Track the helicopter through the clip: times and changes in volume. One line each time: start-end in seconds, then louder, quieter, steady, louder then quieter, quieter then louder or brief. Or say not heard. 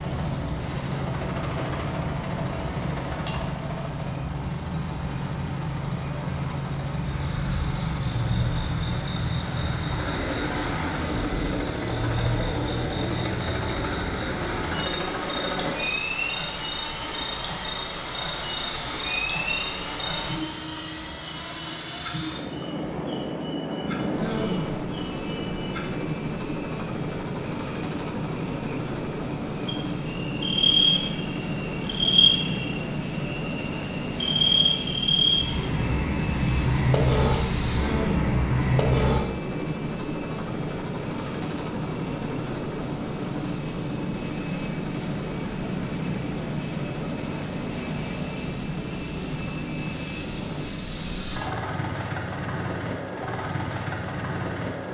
0.0-54.9 steady.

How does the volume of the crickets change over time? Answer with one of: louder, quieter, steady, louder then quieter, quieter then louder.
louder.